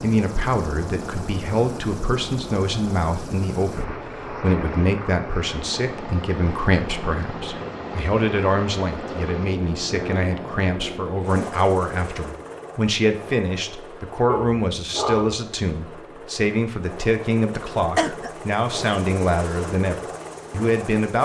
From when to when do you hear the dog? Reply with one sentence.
You can hear the dog from 14.2 to 15.3 s.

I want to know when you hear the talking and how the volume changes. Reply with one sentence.
The talking can be heard from 0.0 to 21.1 s, at a steady volume.